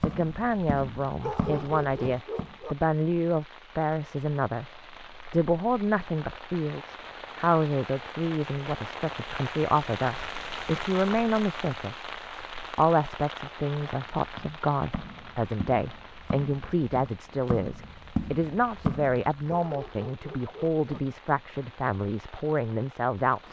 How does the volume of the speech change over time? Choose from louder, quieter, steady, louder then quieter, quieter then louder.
steady.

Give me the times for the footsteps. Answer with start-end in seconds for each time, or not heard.
0.0-2.5, 13.9-19.6.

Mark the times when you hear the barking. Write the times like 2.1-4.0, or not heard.
1.2-2.8, 19.6-21.0.